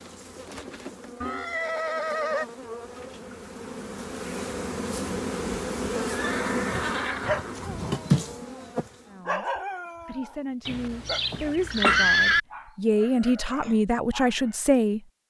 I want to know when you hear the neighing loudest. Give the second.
12 s.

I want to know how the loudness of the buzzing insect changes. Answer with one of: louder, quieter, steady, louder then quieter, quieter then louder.
louder.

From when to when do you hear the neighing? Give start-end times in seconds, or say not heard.
1.2-2.5, 6.1-7.8, 10.7-12.4.